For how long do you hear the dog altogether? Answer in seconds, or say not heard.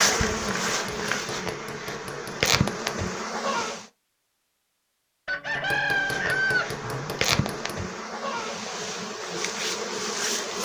not heard.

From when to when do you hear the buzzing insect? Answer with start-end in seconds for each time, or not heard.
0.0-3.9, 5.9-10.6.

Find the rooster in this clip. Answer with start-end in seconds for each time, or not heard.
5.2-7.2.